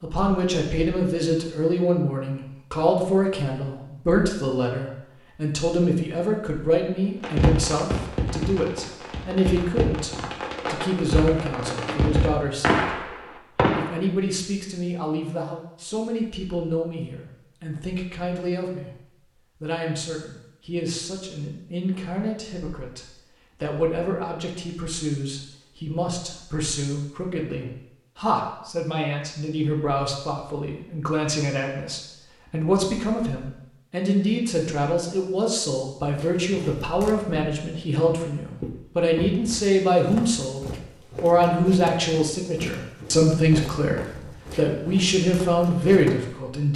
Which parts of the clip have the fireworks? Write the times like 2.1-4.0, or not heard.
7.2-13.9.